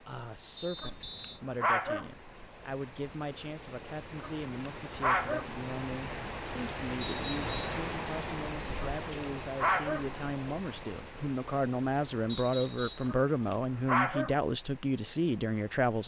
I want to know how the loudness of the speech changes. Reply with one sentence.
The volume of the speech goes up.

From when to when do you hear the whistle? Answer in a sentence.
The whistle can be heard from 0.6 to 1.4 s, from 7.0 to 7.7 s and from 12.2 to 13.2 s.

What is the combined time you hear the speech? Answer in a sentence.
You can hear the speech for 16 seconds altogether.